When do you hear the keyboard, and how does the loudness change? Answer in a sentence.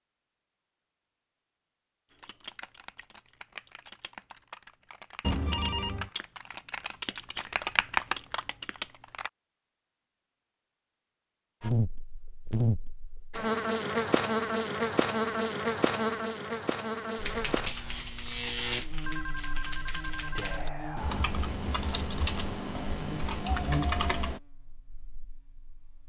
You can hear the keyboard from 2.1 to 9.3 s, getting louder; and from 17.1 to 24.4 s, getting louder.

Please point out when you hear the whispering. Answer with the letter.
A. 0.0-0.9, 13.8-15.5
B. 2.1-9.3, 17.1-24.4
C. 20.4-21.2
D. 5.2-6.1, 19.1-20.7
C.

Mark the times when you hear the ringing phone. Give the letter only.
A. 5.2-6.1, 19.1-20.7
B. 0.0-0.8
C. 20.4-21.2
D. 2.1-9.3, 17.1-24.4
A.